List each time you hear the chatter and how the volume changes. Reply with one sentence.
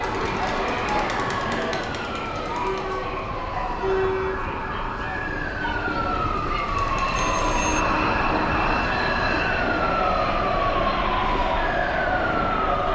You can hear the chatter from 0.0 to 12.9 s, getting quieter then louder.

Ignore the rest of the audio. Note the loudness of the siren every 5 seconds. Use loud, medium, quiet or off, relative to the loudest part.
medium, loud, loud.